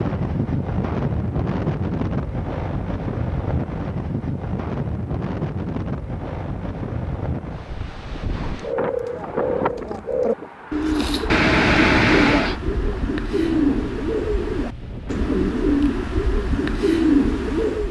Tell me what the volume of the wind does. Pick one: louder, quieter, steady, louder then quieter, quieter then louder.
quieter.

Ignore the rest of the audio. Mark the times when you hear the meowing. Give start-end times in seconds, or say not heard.
11.2-12.6.